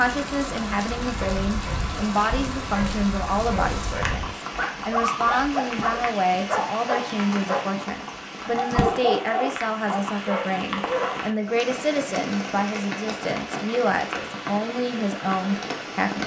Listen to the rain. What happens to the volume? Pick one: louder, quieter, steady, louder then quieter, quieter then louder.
steady.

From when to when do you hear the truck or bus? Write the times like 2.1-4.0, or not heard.
not heard.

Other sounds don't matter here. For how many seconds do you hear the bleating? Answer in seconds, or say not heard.
not heard.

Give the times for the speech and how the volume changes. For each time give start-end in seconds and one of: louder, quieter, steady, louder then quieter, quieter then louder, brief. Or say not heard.
0.0-16.2 steady.